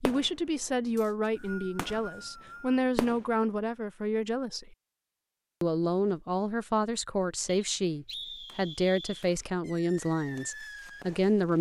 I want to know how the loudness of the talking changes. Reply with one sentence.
The volume of the talking stays about the same.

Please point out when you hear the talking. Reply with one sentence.
You can hear the talking from 0.0 to 4.7 s and from 5.6 to 11.5 s.